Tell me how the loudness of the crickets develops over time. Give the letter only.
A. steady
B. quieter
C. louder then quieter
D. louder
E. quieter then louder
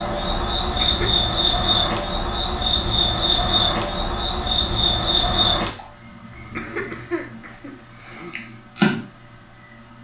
A.